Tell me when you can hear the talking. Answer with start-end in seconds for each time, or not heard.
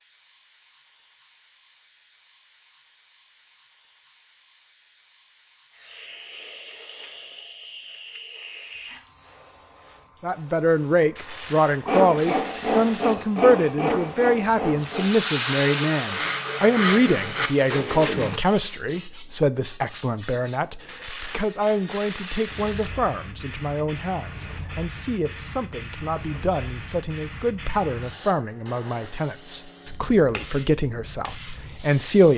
10.2-32.3.